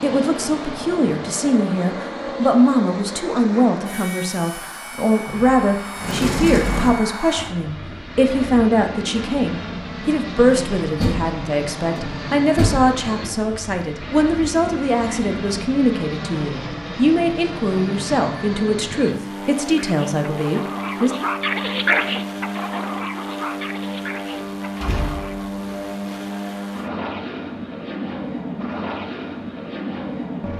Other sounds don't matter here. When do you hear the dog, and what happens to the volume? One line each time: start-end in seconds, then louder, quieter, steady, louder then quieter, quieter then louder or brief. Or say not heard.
19.6-25.4 louder then quieter.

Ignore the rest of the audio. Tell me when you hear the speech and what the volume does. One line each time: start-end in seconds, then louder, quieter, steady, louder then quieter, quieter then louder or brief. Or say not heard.
0.0-21.1 steady.